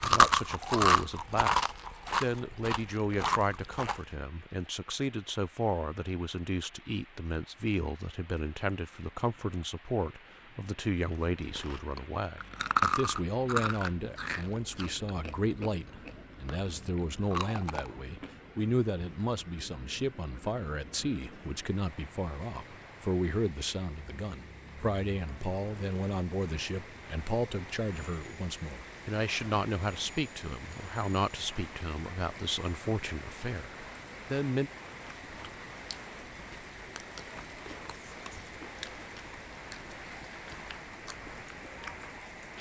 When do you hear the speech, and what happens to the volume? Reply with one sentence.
The speech can be heard briefly from 0.0 to 1.6 s; and from 2.2 to 34.7 s, at a steady volume.